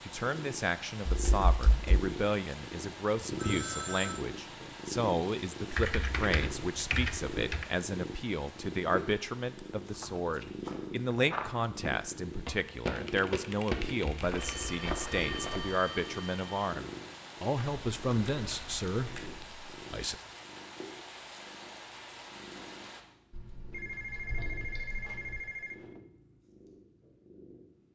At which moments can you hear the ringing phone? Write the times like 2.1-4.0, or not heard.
3.2-4.2, 14.3-16.6, 23.7-26.0.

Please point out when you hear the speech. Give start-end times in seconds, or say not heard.
0.0-20.1.